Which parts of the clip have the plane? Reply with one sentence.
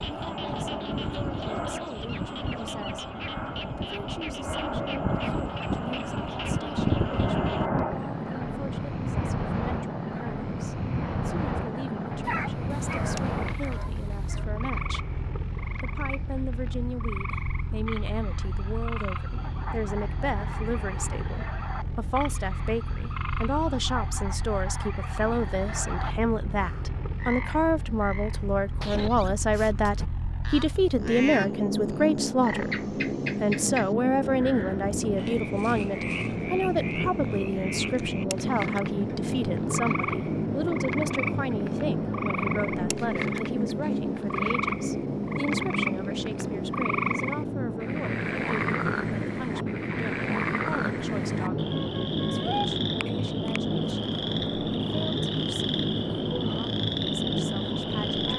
You can hear the plane from 0.0 to 58.3 s.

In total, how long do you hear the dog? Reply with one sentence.
You can hear the dog for 2 seconds altogether.